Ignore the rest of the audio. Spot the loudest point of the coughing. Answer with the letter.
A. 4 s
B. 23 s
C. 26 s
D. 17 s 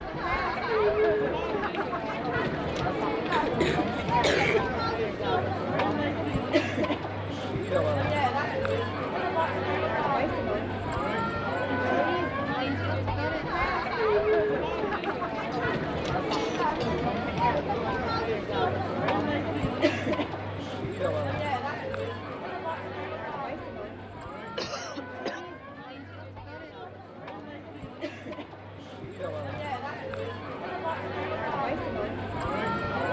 A.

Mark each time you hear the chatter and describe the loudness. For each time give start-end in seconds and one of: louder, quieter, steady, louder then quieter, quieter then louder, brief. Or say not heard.
0.0-33.0 quieter.